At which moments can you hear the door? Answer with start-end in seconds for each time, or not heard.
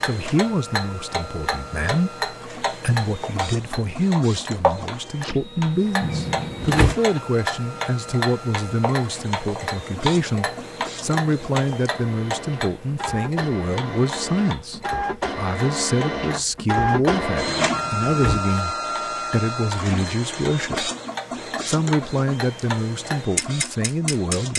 6.0-7.0, 17.4-18.4.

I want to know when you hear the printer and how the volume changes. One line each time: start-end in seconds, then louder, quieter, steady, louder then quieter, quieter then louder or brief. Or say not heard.
0.0-24.5 louder then quieter.